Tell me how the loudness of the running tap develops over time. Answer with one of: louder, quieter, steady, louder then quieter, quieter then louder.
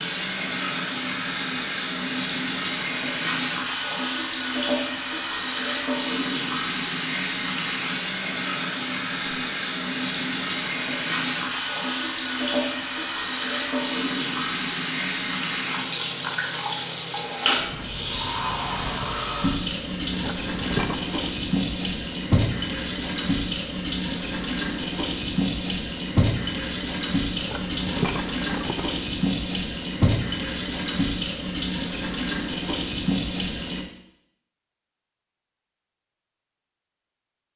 steady.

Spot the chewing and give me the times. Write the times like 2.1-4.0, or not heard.
not heard.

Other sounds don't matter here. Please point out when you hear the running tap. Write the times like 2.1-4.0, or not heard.
0.0-33.9.